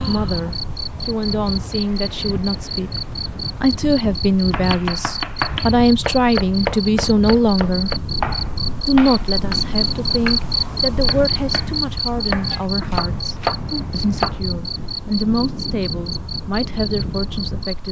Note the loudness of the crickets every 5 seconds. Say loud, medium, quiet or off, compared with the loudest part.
medium, loud, loud, medium.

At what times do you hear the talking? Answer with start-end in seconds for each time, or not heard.
0.1-3.0, 3.6-7.9, 8.8-17.8.